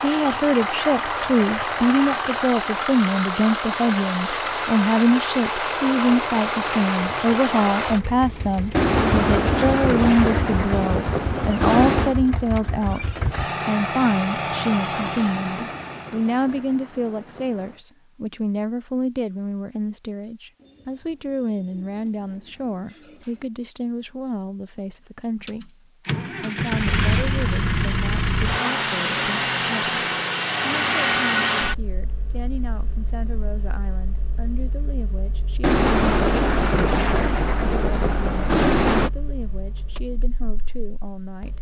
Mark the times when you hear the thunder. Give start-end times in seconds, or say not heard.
8.7-12.2, 14.9-17.8, 35.6-39.1.